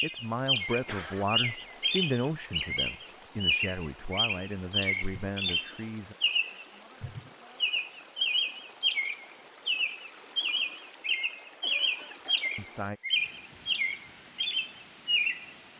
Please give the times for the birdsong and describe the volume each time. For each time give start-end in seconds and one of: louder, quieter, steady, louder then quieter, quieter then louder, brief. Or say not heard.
0.0-15.7 steady.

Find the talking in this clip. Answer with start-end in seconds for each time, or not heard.
0.0-6.2, 12.6-13.0.